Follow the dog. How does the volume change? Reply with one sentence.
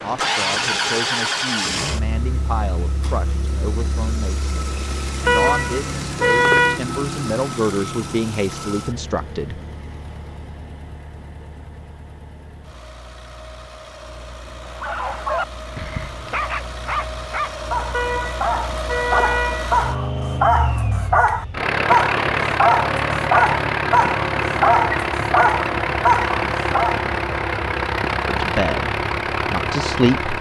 The volume of the dog goes up.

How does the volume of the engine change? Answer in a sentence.
The loudness of the engine goes down, then up.